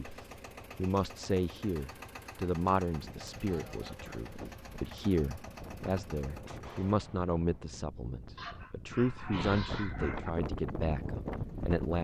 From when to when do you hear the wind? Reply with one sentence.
You can hear the wind from 3.0 to 11.9 s.